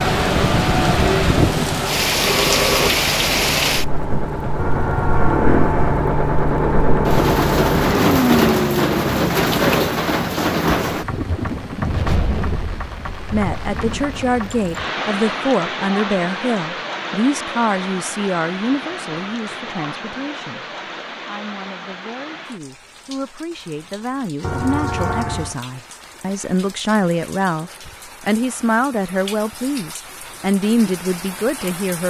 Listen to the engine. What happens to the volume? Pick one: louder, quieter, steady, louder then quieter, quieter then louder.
louder.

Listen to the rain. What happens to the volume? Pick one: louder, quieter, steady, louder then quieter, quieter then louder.
quieter.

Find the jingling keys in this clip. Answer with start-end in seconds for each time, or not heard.
not heard.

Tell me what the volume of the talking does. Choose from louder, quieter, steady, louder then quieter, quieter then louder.
quieter then louder.